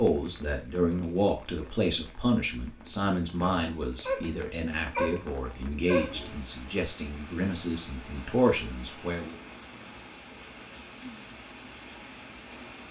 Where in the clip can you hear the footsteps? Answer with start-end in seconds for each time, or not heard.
not heard.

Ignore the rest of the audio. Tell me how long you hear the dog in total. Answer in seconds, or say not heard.
3 s.